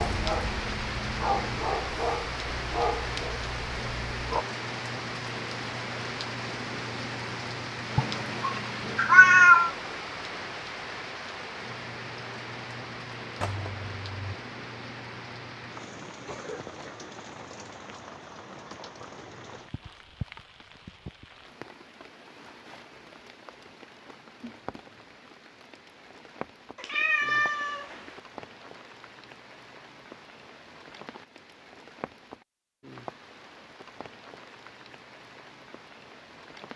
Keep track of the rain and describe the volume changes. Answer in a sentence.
The loudness of the rain goes down.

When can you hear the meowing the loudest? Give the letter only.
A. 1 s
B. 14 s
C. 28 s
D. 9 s
D.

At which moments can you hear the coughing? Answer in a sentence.
You can't hear the coughing here.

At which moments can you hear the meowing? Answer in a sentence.
The meowing can be heard from 8.0 to 9.7 s, from 13.4 to 14.3 s and from 26.8 to 28.2 s.